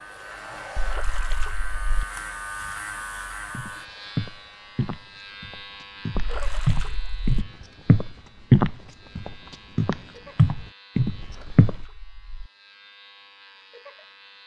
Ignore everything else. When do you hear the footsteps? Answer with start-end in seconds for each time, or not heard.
3.5-11.8.